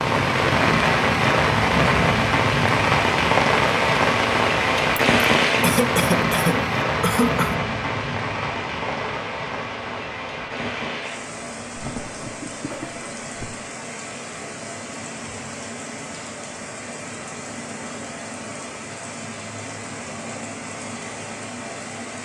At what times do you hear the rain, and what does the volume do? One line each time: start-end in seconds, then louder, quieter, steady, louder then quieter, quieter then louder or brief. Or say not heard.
0.0-22.2 quieter.